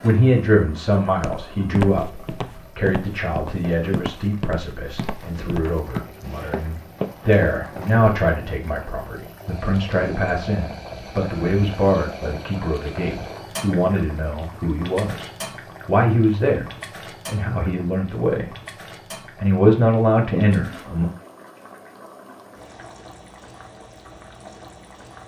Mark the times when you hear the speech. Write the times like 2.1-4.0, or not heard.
0.0-18.6, 19.4-21.1.